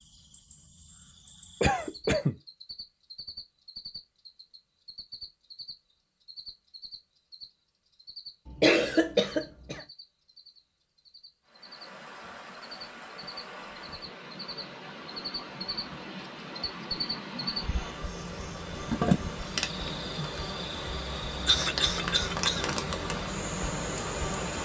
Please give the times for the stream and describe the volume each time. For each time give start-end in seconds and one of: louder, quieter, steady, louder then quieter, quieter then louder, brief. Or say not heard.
11.4-24.6 louder.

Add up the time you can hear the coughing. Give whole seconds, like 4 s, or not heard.
3 s.